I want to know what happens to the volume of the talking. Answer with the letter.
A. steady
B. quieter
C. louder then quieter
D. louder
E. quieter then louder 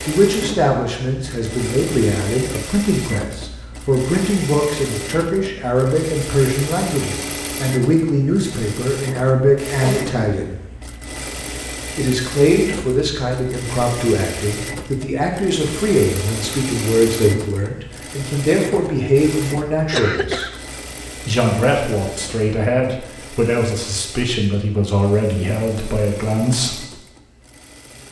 A.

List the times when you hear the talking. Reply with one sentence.
You can hear the talking from 0.0 to 10.6 s, from 11.9 to 20.5 s and from 21.2 to 26.8 s.